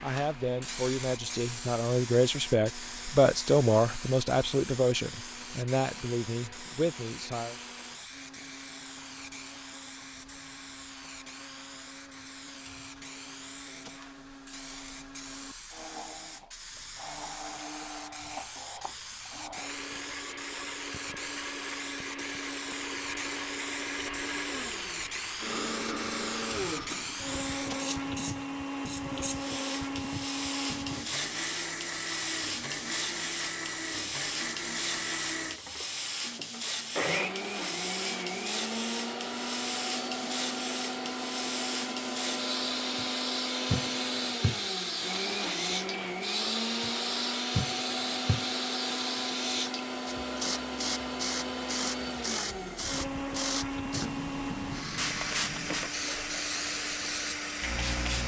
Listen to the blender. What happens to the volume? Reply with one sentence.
The volume of the blender goes up.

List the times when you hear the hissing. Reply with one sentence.
The hissing can be heard from 0.0 to 58.2 s.